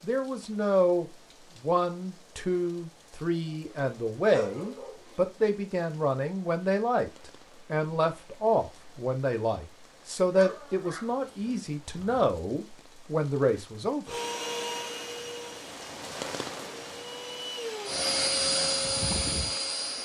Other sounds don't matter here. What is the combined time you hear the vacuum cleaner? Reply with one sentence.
You can hear the vacuum cleaner for 6 seconds altogether.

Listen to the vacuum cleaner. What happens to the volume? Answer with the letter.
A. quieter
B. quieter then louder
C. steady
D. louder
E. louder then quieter
B.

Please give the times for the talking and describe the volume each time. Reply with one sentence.
You can hear the talking from 0.0 to 14.2 s, at a steady volume.